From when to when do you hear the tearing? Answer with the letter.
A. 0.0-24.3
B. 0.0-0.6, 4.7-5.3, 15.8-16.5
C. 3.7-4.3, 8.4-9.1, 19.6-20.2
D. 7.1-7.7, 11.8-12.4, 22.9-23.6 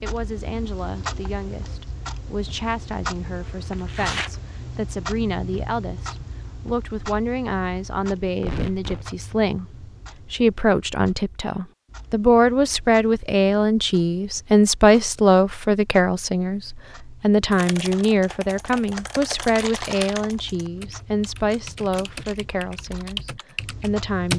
C.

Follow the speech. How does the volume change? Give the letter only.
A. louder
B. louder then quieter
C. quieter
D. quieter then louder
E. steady
B.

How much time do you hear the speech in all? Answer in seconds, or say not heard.
24 s.